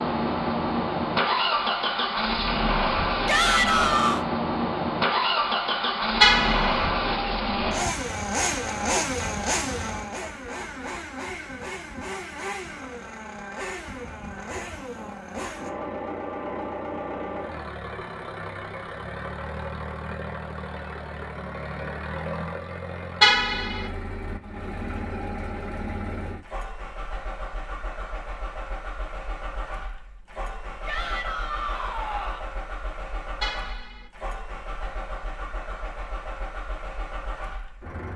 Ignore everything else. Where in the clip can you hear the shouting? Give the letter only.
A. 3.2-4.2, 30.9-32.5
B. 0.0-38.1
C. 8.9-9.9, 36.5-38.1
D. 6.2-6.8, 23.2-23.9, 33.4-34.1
A.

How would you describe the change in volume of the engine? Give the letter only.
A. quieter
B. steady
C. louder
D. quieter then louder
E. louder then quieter
A.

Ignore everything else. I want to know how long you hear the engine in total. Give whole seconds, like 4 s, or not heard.
38 s.